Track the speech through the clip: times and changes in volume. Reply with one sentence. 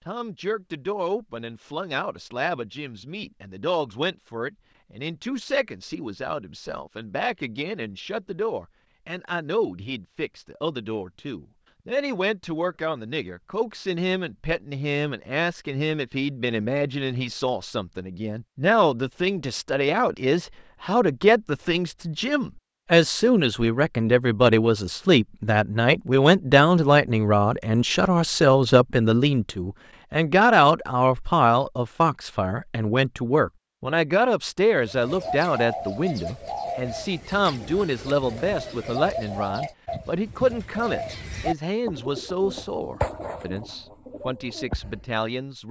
You can hear the speech from 0.1 to 45.6 s, getting louder then quieter.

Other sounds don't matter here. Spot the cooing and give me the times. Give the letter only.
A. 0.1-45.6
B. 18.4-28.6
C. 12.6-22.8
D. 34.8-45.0
D.